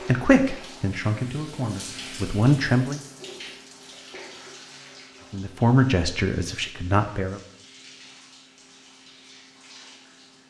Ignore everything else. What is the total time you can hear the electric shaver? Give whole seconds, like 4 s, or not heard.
not heard.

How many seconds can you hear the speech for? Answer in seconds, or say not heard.
5 s.